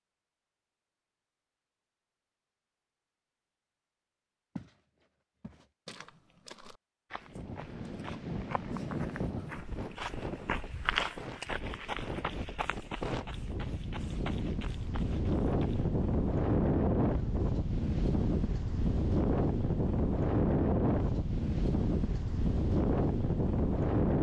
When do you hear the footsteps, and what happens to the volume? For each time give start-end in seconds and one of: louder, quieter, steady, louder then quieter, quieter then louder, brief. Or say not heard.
4.5-15.8 louder then quieter.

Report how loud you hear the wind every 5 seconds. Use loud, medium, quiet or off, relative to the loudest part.
off, medium, medium, loud, loud.